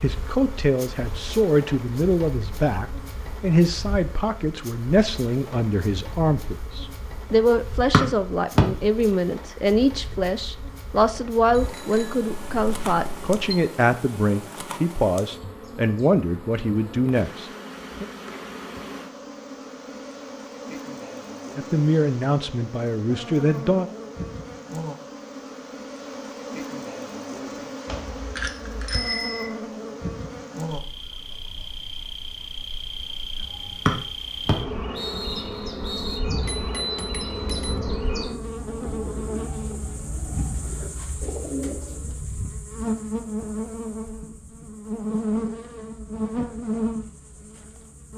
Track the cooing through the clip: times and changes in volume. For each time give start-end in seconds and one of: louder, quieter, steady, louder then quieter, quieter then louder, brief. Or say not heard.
36.2-42.1 louder.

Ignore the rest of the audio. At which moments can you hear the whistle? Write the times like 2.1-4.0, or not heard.
7.9-8.7, 33.9-36.2.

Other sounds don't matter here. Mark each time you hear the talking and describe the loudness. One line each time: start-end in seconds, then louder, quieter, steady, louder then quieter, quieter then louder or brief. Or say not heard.
0.0-18.1 steady
21.6-23.9 brief.